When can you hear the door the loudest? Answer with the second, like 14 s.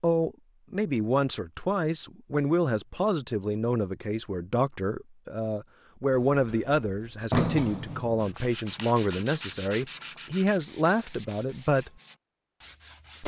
7 s.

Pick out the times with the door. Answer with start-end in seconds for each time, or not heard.
6.1-8.3.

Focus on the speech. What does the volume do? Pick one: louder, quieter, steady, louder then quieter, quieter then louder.
steady.